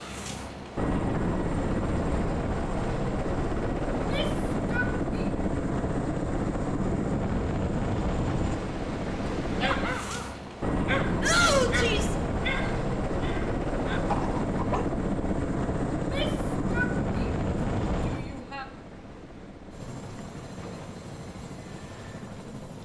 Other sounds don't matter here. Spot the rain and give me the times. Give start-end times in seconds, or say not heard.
not heard.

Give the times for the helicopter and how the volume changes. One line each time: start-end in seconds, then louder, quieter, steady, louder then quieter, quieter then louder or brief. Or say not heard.
0.0-22.7 quieter.